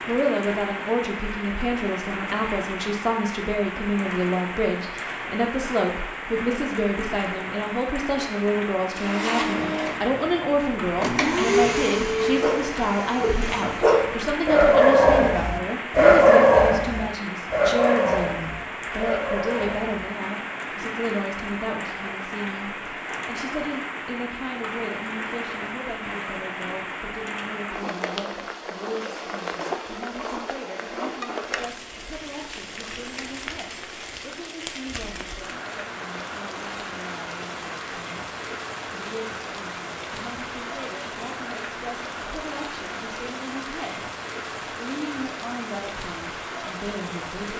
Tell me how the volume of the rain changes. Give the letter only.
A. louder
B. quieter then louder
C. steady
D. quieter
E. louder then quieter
C.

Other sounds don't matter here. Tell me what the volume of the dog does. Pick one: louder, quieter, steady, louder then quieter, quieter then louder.
louder then quieter.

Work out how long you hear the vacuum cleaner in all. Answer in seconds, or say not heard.
5 s.